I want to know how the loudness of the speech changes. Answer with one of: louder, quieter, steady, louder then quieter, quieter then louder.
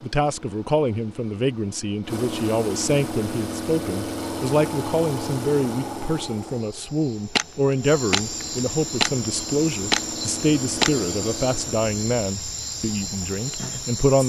steady.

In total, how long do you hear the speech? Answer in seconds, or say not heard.
14 s.